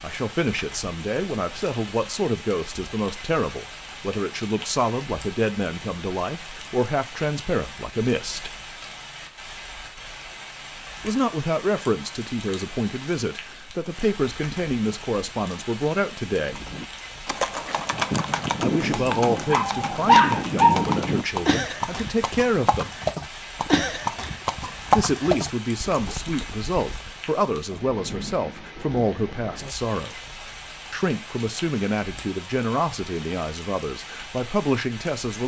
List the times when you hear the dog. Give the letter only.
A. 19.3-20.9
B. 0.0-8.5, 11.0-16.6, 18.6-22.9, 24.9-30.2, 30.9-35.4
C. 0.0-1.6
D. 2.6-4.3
A.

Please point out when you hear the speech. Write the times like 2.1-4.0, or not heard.
0.0-8.5, 11.0-16.6, 18.6-22.9, 24.9-30.2, 30.9-35.4.